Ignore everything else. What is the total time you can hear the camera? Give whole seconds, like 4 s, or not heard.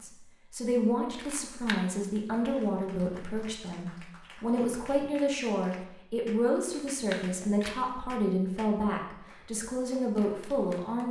2 s.